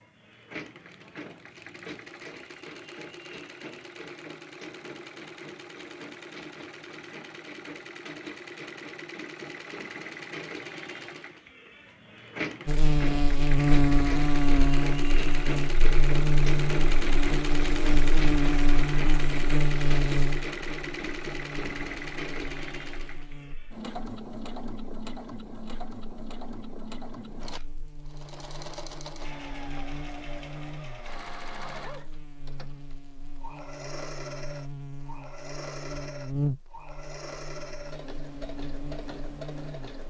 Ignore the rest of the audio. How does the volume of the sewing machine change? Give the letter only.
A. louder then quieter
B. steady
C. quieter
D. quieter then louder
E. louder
A.